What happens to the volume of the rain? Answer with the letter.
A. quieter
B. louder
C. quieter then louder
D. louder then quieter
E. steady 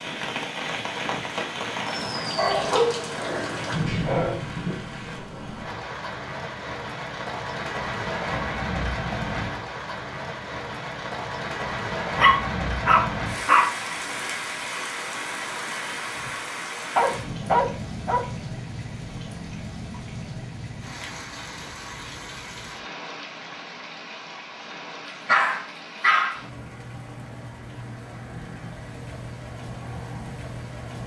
A.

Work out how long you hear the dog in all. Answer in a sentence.
The dog can be heard for 6 seconds in total.